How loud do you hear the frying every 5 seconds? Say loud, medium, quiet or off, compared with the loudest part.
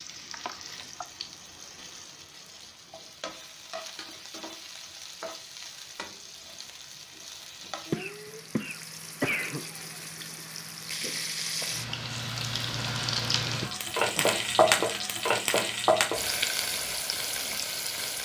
quiet, quiet, loud, loud.